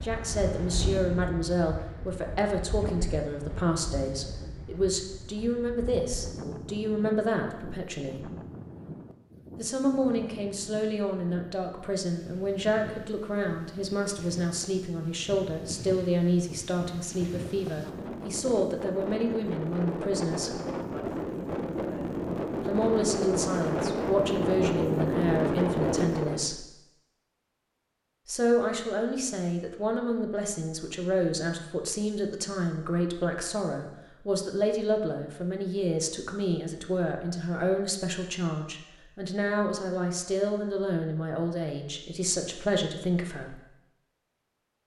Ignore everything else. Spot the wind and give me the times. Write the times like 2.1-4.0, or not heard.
0.0-26.5.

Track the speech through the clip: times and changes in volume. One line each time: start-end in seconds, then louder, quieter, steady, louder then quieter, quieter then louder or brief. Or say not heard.
0.0-8.3 steady
9.6-20.6 steady
22.6-26.6 steady
28.2-43.5 steady.